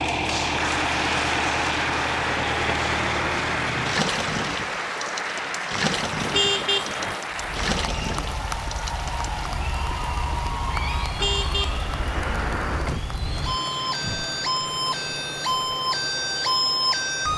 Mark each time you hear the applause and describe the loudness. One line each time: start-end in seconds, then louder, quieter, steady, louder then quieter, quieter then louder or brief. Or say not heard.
0.0-17.1 quieter.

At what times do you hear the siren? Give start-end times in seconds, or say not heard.
7.3-17.3.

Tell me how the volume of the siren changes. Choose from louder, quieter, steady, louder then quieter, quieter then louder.
louder.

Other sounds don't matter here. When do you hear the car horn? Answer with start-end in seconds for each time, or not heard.
6.3-7.2, 11.2-13.0.